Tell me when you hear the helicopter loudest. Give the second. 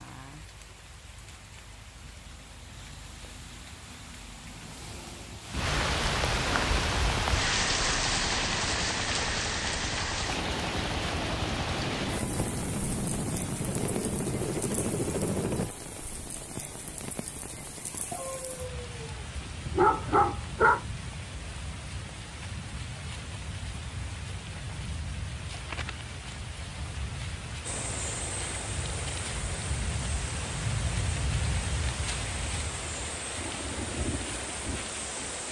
15 s.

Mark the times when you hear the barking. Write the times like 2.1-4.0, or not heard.
18.1-20.8.